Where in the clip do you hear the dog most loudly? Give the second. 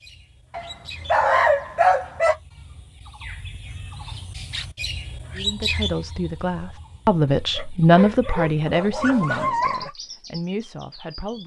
1 s.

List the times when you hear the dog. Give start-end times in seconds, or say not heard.
0.5-2.4, 7.5-9.9.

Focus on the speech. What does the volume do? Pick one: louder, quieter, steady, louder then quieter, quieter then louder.
louder then quieter.